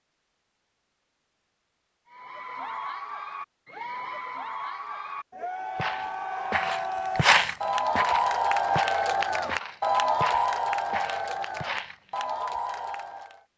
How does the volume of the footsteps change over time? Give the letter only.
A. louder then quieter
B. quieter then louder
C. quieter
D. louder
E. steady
A.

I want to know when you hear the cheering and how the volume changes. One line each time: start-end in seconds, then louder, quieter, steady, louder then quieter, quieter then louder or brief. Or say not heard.
2.0-13.4 louder then quieter.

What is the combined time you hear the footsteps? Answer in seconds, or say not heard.
6 s.